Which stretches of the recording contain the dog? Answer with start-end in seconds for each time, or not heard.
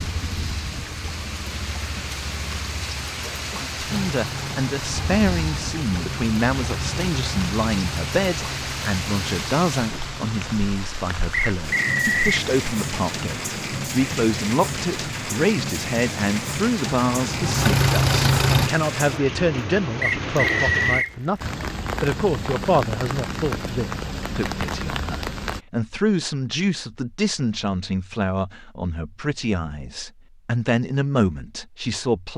not heard.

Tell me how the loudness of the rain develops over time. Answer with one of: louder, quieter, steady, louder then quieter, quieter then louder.
steady.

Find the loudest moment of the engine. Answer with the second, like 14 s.
18 s.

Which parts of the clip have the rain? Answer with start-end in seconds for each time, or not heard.
0.0-25.6.